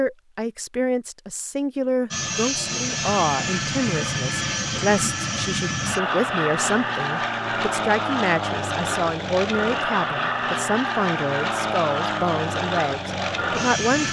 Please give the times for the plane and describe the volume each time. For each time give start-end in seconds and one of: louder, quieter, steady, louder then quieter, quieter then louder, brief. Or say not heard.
2.1-14.0 steady.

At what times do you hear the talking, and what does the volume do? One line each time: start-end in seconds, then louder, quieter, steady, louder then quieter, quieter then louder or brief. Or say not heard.
0.0-14.0 steady.